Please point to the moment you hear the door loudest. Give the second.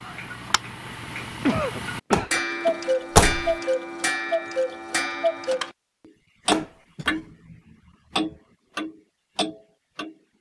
3 s.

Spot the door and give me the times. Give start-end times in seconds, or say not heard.
2.1-3.5, 6.5-7.2.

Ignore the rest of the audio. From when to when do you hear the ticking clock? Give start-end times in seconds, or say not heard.
0.0-5.7, 6.5-10.2.